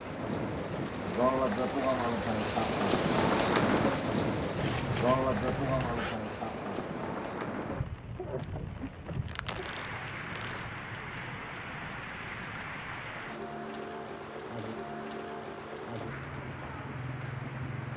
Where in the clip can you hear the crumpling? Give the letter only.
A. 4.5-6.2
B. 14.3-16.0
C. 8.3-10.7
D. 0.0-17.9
C.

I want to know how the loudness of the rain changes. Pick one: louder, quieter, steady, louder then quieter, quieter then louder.
quieter.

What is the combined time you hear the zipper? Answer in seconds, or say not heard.
2 s.